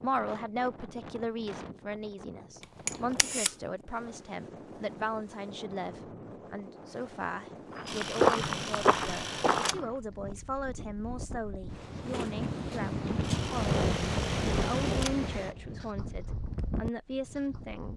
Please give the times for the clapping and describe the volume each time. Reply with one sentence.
The clapping can't be heard in this clip.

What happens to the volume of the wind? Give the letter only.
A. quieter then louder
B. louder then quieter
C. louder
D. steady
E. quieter
C.